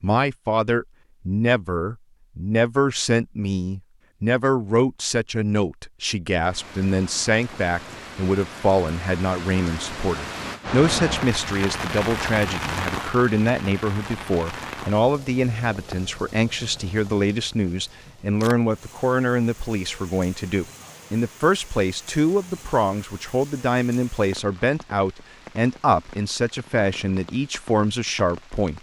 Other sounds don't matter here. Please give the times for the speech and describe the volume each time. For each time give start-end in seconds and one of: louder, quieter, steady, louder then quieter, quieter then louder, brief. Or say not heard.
0.0-28.7 steady.